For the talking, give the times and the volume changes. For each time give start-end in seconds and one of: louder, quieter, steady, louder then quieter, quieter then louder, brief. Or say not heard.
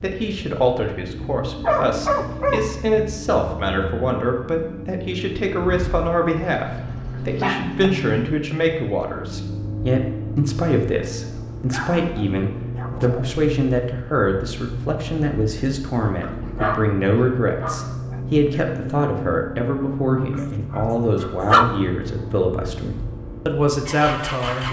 0.0-24.6 steady.